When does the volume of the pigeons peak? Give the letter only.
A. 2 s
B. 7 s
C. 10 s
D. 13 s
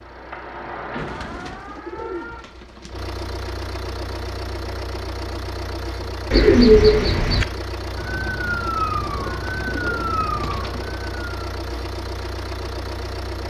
B.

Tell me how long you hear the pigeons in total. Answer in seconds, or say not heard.
5 s.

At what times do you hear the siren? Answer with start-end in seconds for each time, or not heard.
0.0-2.5, 8.0-11.4.